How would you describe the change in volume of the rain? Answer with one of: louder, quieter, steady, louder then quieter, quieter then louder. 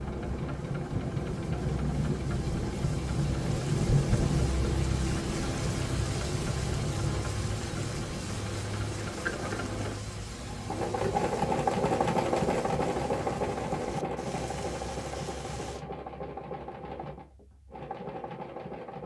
quieter.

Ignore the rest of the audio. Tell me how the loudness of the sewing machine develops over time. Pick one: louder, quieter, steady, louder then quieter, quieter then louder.
louder then quieter.